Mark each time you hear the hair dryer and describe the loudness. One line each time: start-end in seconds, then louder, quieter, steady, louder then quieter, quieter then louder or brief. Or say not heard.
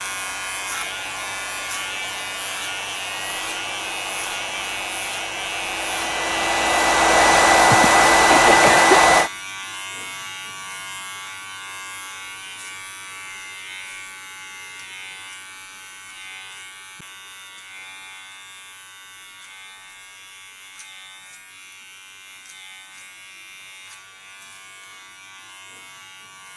0.0-9.3 louder.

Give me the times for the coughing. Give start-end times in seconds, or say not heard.
7.7-9.0.